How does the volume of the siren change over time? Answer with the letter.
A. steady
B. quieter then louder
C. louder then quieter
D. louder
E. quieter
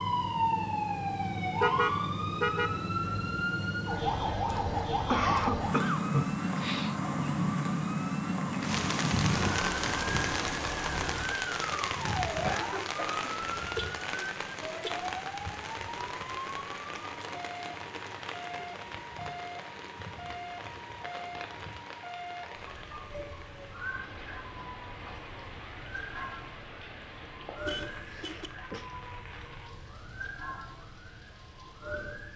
E.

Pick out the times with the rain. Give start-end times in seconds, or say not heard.
8.6-32.3.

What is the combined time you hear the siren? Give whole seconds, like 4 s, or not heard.
32 s.